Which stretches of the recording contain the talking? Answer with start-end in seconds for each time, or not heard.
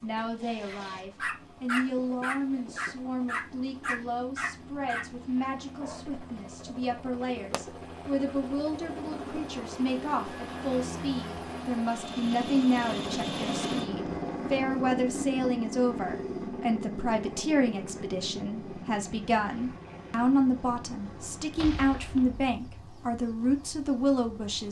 0.0-24.6.